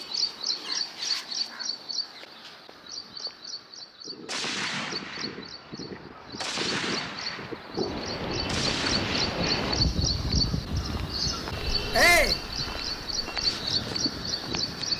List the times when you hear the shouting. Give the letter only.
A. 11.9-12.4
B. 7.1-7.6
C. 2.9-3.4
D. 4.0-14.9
A.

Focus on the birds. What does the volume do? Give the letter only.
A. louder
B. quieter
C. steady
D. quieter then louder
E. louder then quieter
D.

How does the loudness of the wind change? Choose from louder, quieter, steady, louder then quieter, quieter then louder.
louder then quieter.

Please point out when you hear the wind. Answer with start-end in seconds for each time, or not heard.
4.0-14.9.